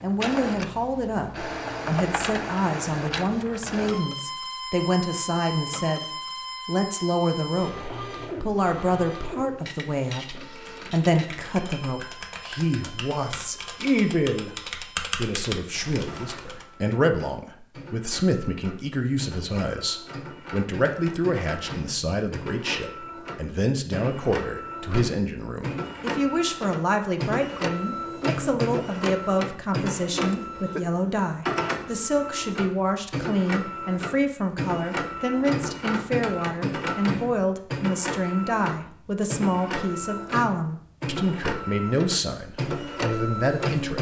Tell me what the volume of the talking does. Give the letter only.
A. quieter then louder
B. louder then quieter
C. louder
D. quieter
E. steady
E.